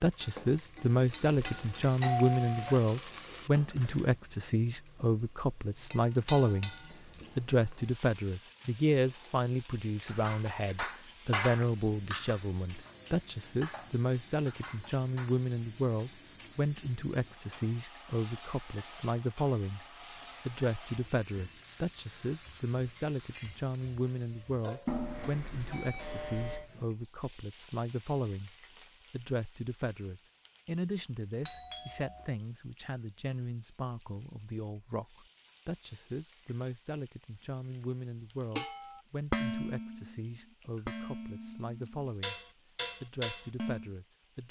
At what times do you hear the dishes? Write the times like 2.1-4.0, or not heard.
10.1-15.3, 38.5-43.9.